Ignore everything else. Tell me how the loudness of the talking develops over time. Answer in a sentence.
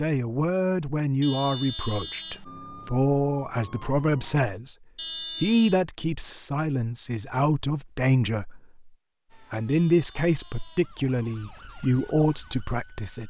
The loudness of the talking stays about the same.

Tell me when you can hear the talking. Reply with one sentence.
The talking can be heard from 0.0 to 4.8 s, from 5.4 to 8.8 s and from 9.5 to 13.2 s.